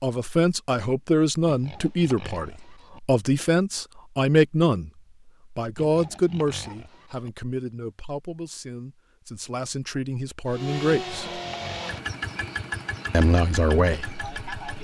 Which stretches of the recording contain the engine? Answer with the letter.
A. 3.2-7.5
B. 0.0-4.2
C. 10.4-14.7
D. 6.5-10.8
C.